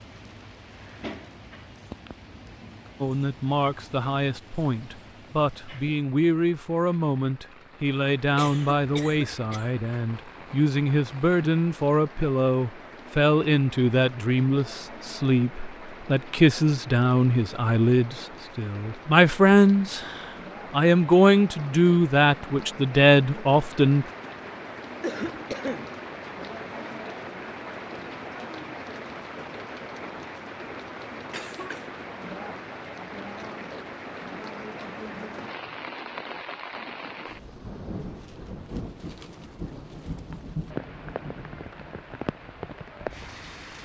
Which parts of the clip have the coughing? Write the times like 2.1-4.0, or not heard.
8.3-9.7, 25.0-25.9, 31.3-31.9.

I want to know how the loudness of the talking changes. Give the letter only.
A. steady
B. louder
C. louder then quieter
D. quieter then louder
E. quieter
B.